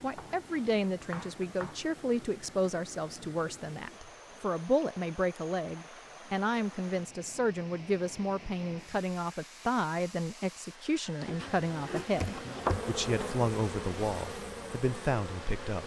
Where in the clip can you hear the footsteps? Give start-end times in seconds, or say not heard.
not heard.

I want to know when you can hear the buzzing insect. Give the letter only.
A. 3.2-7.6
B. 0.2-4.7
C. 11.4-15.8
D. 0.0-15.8
C.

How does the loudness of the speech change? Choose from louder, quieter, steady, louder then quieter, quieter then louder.
steady.